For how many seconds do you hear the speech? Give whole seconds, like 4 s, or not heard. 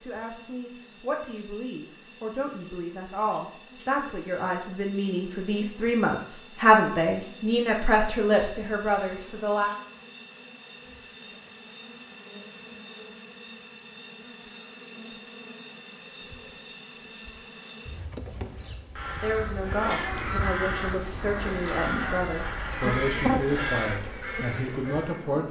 16 s.